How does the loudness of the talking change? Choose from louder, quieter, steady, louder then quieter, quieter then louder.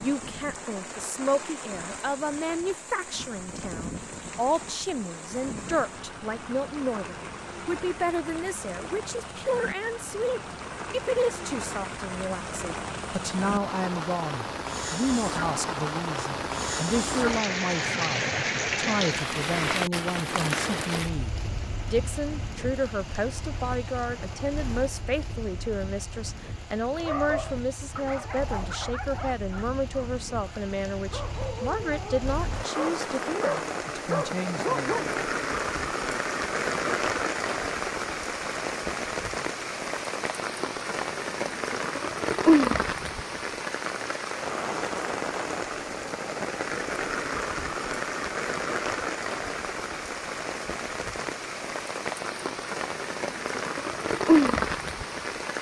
steady.